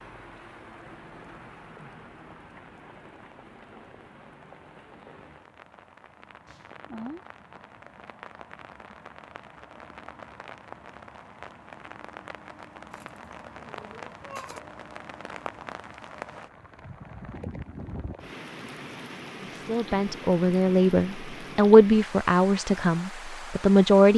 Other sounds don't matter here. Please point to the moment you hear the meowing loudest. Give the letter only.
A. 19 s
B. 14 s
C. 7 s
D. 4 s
C.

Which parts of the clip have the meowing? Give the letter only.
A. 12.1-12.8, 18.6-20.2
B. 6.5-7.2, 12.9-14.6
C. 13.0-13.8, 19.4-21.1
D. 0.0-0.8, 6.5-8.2
B.